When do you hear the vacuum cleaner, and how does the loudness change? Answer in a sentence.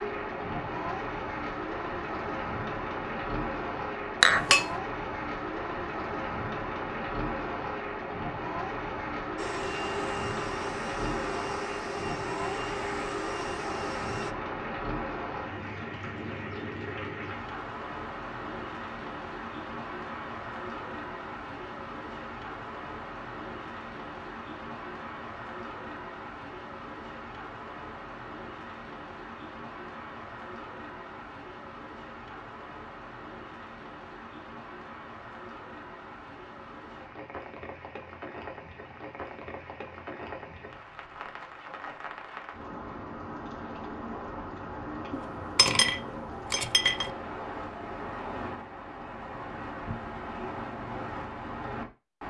The vacuum cleaner can be heard from 9.3 to 14.3 s, at a steady volume.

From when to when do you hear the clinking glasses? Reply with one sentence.
You can hear the clinking glasses from 4.2 to 4.7 s and from 45.1 to 47.1 s.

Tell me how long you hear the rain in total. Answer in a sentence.
The rain can be heard for 52 seconds in total.